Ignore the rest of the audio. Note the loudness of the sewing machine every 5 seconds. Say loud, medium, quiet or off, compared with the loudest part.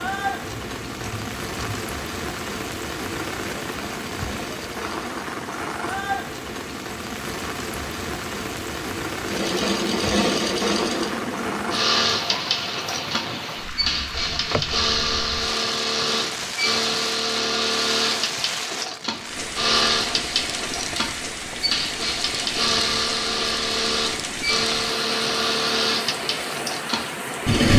quiet, medium, loud, loud, loud, loud.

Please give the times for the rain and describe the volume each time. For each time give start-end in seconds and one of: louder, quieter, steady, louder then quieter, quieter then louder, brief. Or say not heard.
0.0-27.7 steady.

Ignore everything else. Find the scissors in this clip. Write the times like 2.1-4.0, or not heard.
0.4-1.9.